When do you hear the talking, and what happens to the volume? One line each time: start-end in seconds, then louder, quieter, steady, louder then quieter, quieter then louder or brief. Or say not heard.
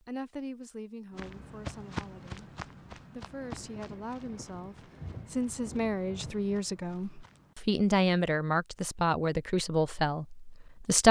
0.1-11.0 louder.